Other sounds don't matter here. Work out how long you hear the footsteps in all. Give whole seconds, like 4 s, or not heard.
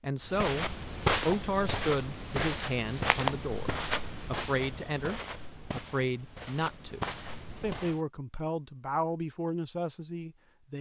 8 s.